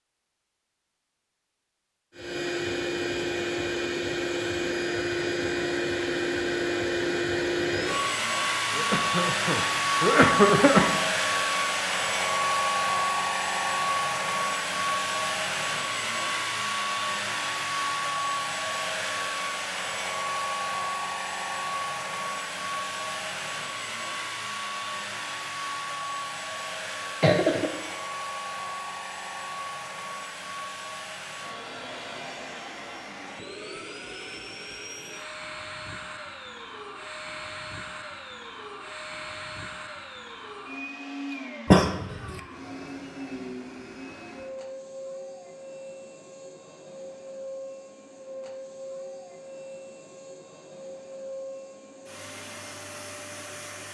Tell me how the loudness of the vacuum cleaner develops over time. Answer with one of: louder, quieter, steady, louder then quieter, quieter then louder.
quieter.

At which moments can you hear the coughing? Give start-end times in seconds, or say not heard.
8.8-11.0, 27.2-27.7, 41.7-42.4.